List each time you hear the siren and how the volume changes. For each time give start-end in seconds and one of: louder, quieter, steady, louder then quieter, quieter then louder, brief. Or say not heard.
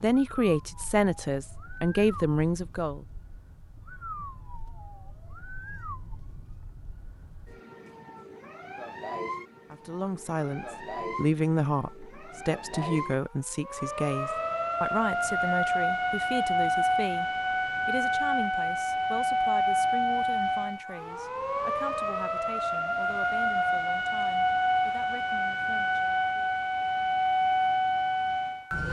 0.0-28.8 louder.